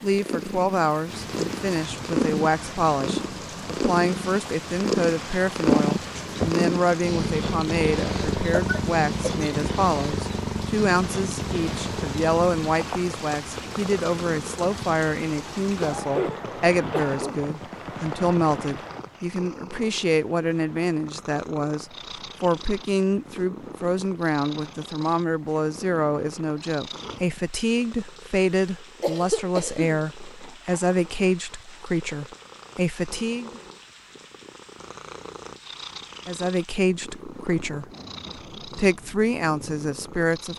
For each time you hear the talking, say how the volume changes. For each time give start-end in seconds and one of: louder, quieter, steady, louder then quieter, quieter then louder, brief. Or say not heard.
0.0-33.6 steady
36.2-37.9 brief
38.6-40.5 brief.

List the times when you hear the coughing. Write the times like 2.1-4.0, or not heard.
8.6-9.7, 15.8-17.5, 29.0-30.0.